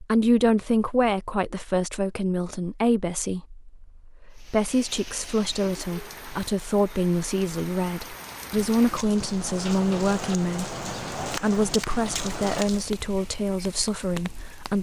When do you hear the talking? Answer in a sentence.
You can hear the talking from 0.0 to 14.7 s.